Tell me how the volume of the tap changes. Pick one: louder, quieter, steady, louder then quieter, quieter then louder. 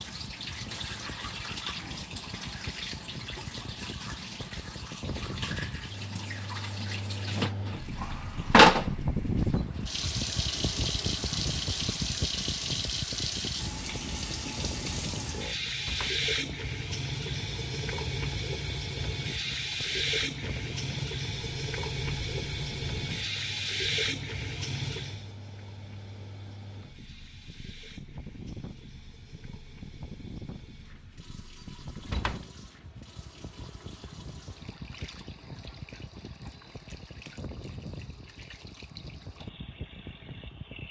louder then quieter.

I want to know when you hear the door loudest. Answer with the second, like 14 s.
32 s.